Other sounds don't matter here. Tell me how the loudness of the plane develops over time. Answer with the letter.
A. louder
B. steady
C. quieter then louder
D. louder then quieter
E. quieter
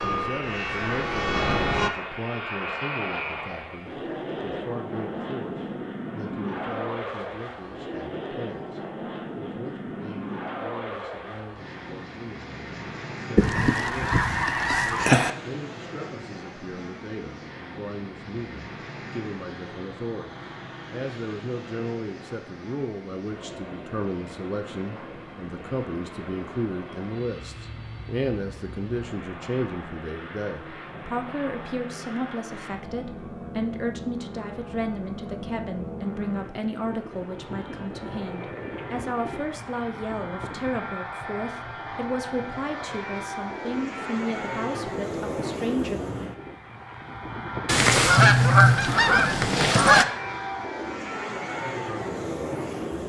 C.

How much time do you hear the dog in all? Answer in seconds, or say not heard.
not heard.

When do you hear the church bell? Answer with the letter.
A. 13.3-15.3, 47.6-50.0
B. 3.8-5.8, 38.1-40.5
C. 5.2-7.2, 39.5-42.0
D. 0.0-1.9
D.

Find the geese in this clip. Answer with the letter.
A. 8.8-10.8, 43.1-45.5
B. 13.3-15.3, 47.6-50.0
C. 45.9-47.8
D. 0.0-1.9
B.